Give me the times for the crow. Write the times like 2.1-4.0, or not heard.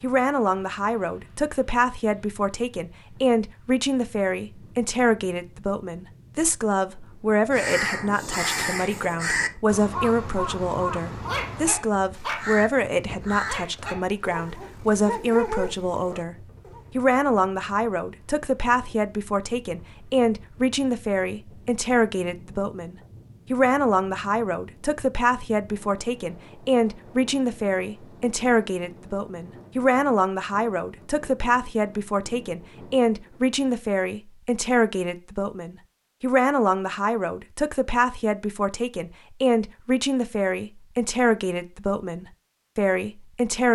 7.5-14.5.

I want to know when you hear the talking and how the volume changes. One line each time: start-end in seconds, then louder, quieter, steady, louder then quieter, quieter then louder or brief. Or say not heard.
0.0-16.4 steady
16.9-43.7 steady.